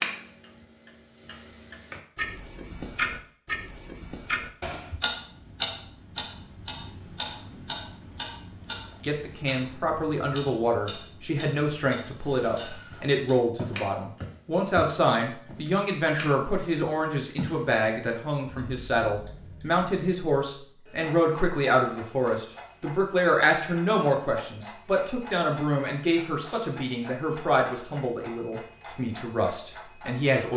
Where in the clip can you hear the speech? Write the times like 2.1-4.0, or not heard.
9.1-30.5.